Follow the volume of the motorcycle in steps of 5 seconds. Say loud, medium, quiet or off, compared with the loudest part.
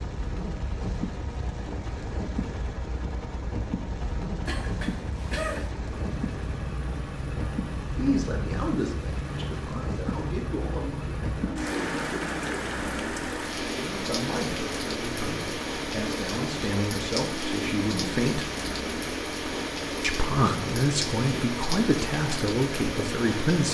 medium, loud, loud, loud, loud.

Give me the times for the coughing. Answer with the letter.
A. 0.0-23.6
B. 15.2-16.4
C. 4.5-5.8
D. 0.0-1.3
C.